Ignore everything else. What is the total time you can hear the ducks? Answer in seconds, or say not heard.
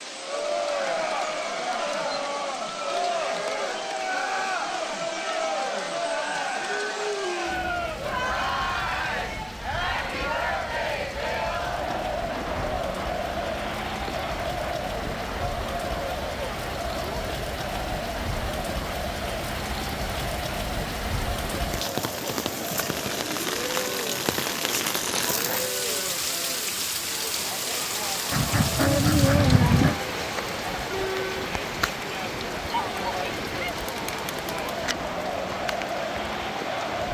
2 s.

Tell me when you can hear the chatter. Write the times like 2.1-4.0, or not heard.
0.1-37.0.